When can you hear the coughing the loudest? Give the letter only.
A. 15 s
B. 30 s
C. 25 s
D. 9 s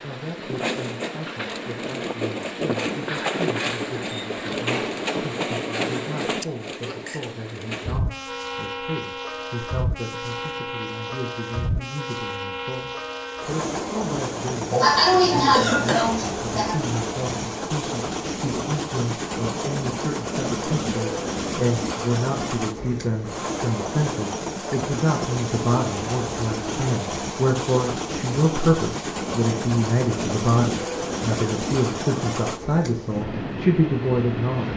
A.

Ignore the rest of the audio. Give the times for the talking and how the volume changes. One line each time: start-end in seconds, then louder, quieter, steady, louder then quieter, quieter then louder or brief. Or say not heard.
0.0-34.7 louder.